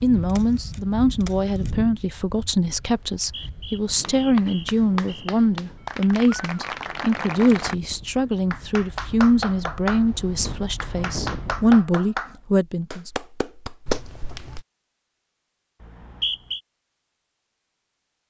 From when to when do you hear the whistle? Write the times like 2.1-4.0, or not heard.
3.1-5.3, 15.8-16.6.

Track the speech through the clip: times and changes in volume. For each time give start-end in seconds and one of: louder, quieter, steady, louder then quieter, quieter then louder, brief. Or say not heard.
0.0-13.1 steady.